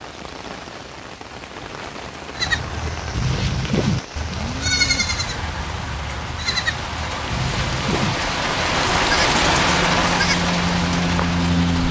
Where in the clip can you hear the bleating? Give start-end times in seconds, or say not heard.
2.4-11.8.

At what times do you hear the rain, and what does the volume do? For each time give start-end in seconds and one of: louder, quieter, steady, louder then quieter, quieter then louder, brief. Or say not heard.
0.0-11.8 louder.